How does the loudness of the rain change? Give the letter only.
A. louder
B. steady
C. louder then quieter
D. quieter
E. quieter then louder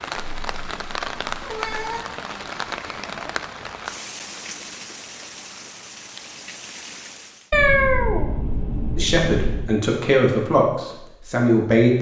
D.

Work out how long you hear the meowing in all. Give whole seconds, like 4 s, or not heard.
4 s.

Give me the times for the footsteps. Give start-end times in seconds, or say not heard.
not heard.